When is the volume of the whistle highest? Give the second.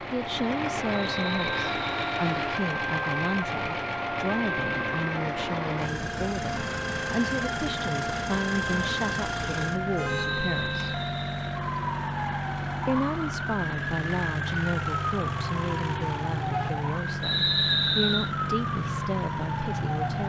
18 s.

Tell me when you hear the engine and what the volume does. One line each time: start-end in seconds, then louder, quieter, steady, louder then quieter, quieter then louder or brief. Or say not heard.
0.0-20.2 steady.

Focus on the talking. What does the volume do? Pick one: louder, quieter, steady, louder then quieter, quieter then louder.
steady.